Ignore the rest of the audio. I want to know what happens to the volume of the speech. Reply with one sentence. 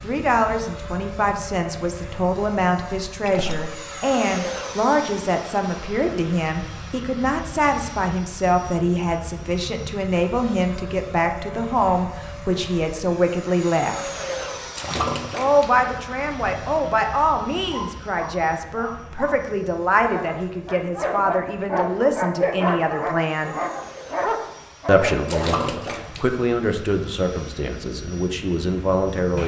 The loudness of the speech stays about the same.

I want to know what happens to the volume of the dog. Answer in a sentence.
The loudness of the dog goes up.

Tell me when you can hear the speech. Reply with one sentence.
You can hear the speech from 0.0 to 14.1 s, from 15.3 to 23.6 s and from 24.9 to 29.4 s.